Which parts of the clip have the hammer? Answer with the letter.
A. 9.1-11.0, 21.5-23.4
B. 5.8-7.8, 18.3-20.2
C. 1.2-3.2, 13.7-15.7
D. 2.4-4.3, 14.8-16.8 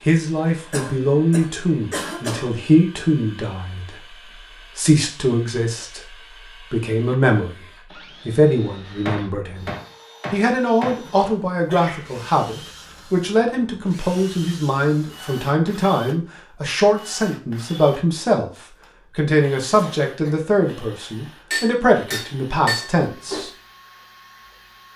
A.